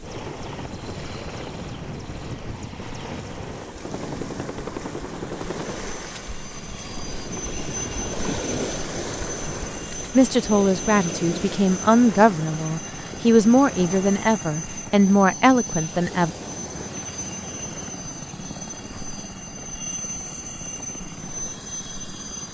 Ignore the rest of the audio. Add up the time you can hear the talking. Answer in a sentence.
You can hear the talking for 6 seconds altogether.